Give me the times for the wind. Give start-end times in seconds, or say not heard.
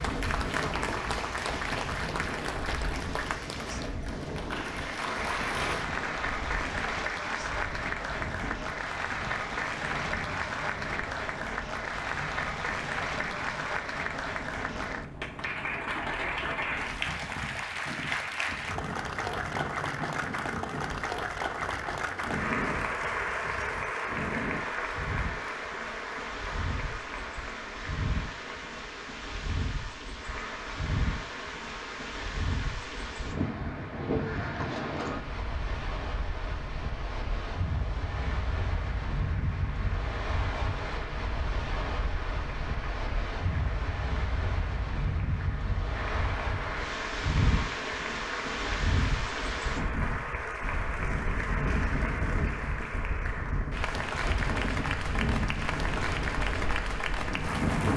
0.0-57.9.